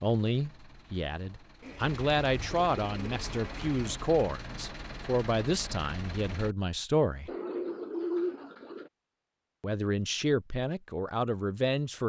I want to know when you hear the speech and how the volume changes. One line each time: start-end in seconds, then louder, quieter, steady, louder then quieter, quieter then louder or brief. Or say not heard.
0.0-7.3 louder then quieter
9.6-12.0 brief.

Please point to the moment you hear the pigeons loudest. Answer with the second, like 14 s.
8 s.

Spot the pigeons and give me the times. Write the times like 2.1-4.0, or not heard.
1.6-4.0, 7.2-8.9.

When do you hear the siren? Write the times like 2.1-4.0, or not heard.
not heard.